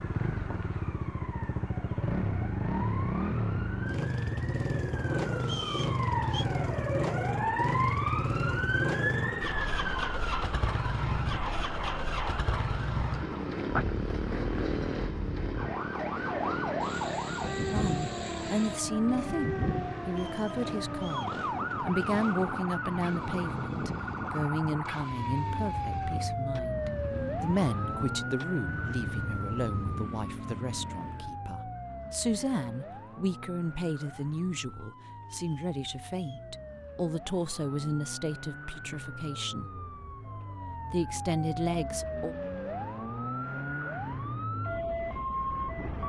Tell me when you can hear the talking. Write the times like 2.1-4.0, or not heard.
17.7-39.6, 40.7-42.4.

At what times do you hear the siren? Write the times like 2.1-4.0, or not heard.
0.0-46.0.